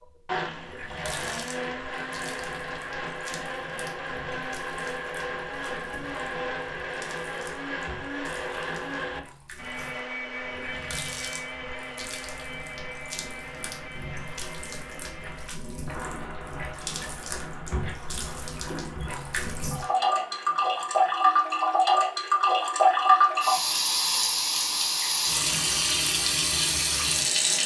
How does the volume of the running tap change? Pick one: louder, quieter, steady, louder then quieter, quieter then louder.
louder.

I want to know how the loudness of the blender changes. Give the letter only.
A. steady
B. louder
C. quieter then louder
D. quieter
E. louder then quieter
D.